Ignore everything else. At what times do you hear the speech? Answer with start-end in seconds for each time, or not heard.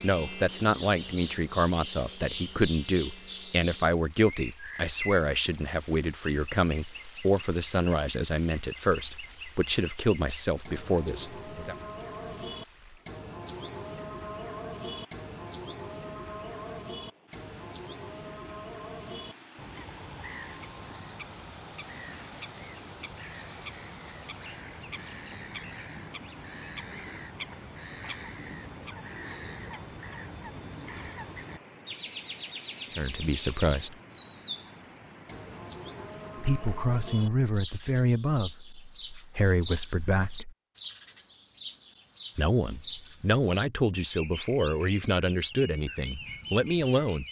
0.0-11.8, 32.9-34.0, 36.4-40.5, 42.4-47.2.